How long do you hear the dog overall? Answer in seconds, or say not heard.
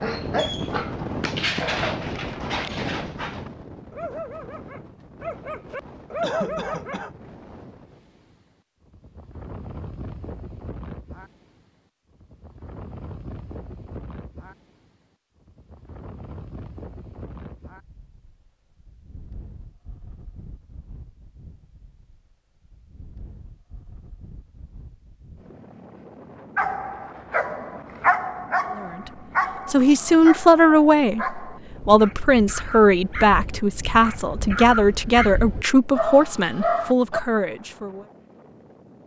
18 s.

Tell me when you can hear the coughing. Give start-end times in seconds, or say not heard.
6.2-7.2.